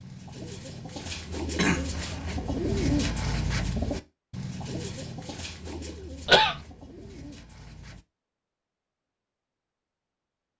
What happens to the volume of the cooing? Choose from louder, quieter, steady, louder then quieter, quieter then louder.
louder then quieter.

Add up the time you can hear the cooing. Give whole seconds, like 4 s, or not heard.
8 s.